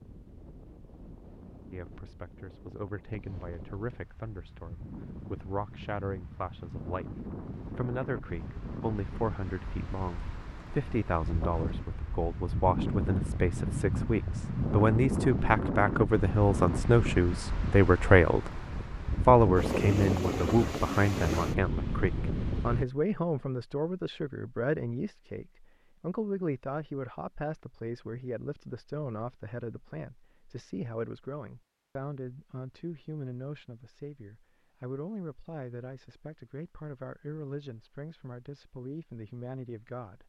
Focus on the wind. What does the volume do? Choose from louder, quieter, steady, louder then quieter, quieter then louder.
louder.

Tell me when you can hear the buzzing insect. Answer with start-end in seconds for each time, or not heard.
not heard.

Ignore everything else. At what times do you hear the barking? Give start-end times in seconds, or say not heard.
not heard.